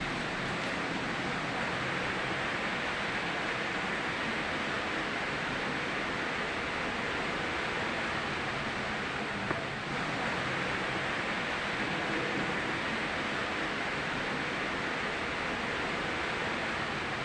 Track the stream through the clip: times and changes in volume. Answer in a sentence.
You can hear the stream from 0.0 to 17.2 s, at a steady volume.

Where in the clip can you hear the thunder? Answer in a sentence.
You can hear the thunder from 11.8 to 12.9 s.